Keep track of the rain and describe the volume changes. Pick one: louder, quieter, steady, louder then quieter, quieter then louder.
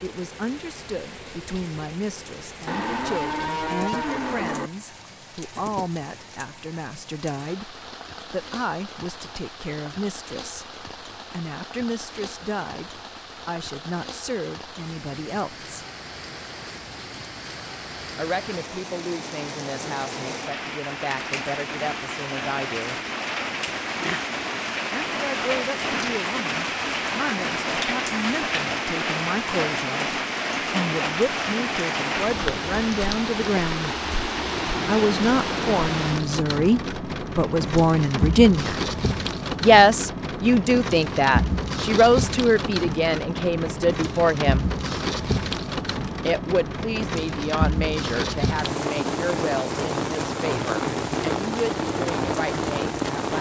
louder.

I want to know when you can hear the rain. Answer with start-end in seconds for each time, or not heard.
0.0-53.3.